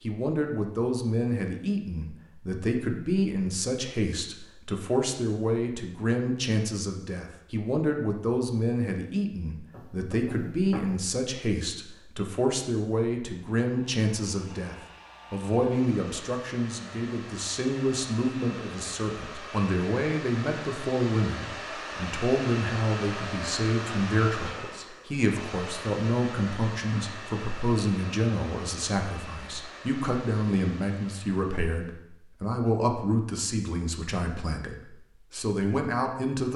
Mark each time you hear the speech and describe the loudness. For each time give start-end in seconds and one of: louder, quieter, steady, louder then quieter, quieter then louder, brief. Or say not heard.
0.0-36.5 steady.